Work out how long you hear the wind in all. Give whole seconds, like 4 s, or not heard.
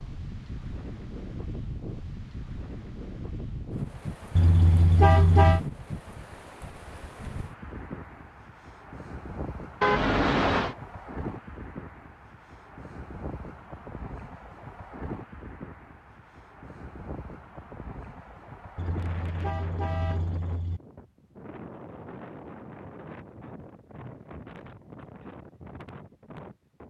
27 s.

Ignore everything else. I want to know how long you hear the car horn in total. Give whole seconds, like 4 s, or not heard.
4 s.